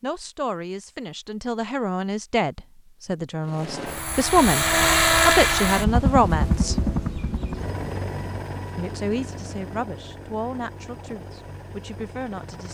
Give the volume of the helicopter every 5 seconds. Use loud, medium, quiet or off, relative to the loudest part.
loud, loud, quiet.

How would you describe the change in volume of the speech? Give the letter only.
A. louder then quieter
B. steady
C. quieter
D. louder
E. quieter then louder
A.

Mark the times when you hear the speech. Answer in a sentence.
The speech can be heard from 0.0 to 6.8 s and from 8.8 to 12.7 s.